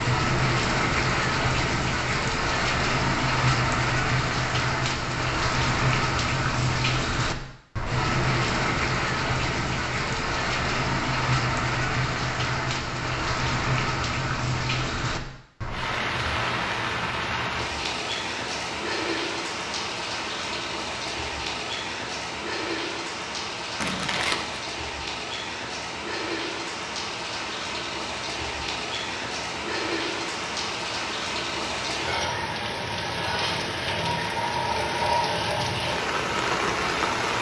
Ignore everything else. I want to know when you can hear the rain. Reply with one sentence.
The rain can be heard from 0.0 to 37.3 s.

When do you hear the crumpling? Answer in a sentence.
The crumpling can be heard from 23.8 to 24.6 s.